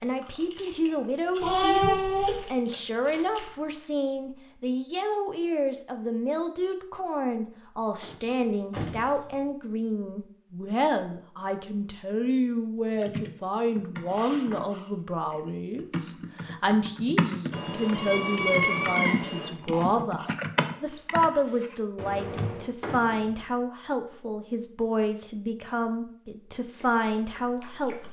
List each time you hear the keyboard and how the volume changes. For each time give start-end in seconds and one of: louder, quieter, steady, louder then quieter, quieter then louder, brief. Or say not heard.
12.9-22.7 louder.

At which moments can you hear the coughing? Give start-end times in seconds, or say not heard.
not heard.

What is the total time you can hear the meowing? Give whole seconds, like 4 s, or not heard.
3 s.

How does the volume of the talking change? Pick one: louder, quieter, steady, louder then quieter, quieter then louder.
steady.